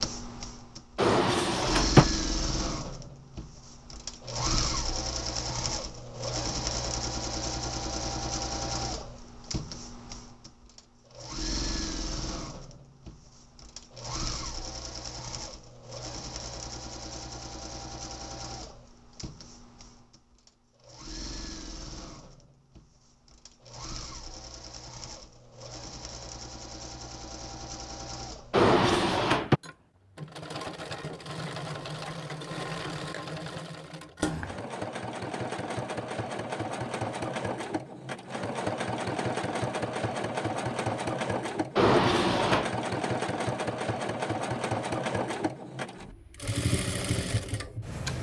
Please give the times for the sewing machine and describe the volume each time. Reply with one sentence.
You can hear the sewing machine from 0.0 to 48.1 s, getting quieter then louder.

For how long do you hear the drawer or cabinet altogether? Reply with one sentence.
The drawer or cabinet can be heard for 3 seconds in total.